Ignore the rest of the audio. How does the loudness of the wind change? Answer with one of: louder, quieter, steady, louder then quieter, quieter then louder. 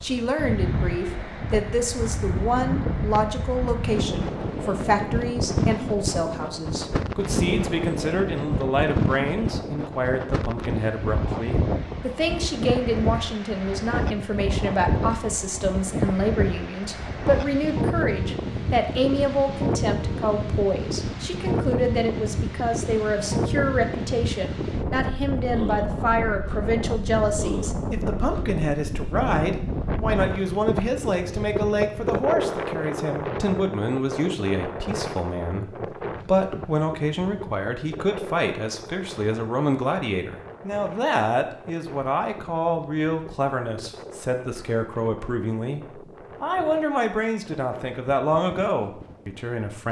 quieter.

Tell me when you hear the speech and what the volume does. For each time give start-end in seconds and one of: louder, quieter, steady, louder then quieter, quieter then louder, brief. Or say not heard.
0.0-49.8 steady.